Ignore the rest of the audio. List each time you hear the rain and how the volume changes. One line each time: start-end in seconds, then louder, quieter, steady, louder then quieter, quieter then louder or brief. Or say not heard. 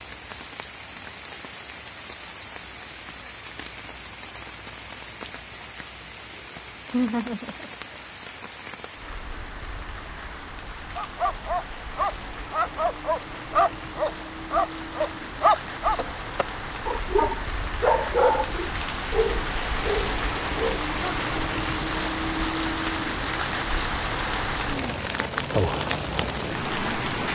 0.0-27.2 louder.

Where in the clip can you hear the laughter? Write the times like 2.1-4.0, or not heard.
6.8-8.1.